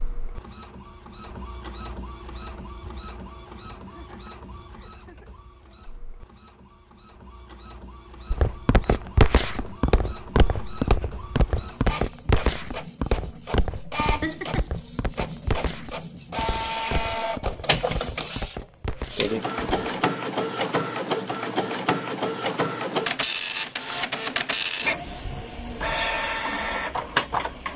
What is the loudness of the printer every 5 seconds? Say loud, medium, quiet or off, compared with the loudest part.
quiet, quiet, medium, loud, loud, loud.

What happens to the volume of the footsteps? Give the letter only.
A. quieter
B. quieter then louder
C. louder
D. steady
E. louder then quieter
A.